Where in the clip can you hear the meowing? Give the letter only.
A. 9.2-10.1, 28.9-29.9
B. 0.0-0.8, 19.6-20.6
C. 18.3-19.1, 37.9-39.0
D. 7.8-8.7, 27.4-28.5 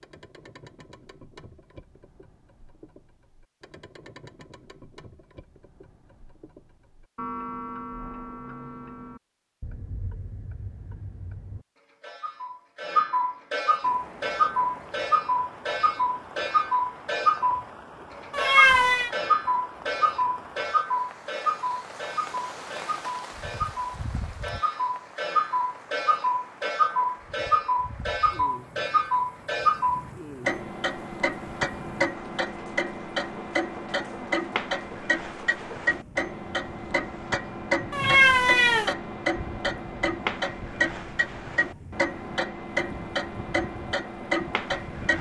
C.